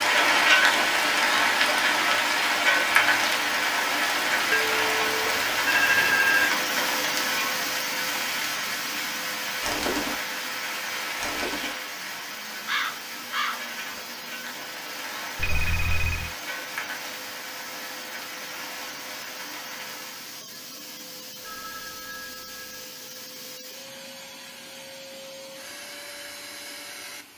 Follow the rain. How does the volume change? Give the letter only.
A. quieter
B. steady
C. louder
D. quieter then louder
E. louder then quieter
A.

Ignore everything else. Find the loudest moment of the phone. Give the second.
6 s.